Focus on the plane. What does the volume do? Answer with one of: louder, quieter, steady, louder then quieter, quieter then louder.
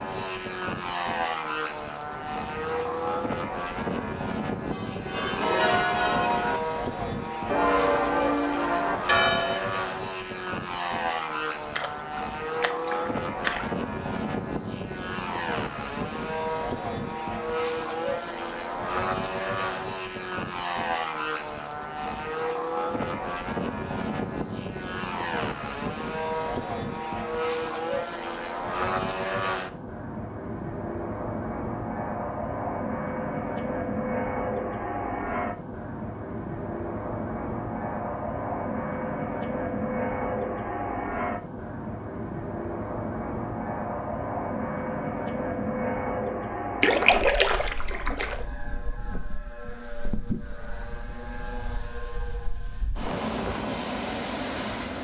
steady.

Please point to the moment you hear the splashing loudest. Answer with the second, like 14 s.
47 s.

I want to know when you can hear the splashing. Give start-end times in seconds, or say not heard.
11.8-13.7, 46.8-48.5.